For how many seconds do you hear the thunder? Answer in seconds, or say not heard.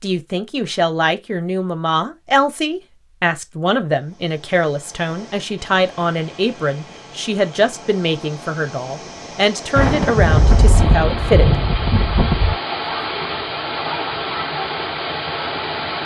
3 s.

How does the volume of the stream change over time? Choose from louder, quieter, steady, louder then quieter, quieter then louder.
louder.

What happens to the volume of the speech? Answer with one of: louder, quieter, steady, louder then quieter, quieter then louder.
steady.